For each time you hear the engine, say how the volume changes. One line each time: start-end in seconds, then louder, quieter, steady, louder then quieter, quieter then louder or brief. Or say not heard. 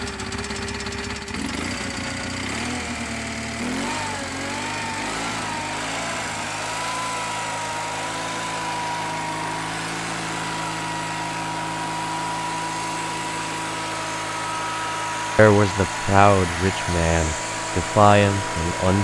0.0-18.9 steady.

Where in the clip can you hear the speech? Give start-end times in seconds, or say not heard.
15.3-18.9.